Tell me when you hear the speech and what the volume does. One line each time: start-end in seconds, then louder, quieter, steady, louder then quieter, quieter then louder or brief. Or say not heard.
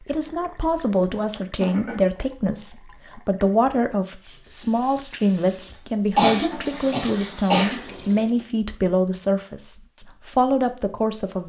0.1-11.4 steady.